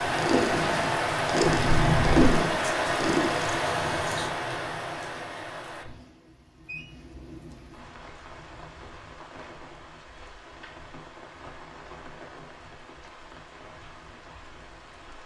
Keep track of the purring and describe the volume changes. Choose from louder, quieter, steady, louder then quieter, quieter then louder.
louder then quieter.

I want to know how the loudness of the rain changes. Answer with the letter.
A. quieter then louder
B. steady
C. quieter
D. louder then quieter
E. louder
C.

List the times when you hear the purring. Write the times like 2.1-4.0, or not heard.
0.0-4.3.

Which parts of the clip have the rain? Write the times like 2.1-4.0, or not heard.
0.0-15.2.